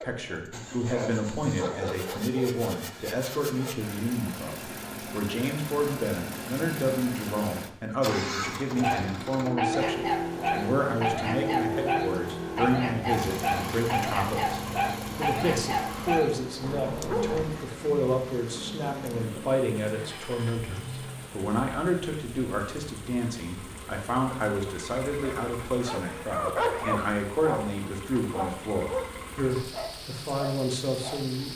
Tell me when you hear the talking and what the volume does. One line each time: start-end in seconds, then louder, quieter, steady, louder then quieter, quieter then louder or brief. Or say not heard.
0.0-31.5 steady.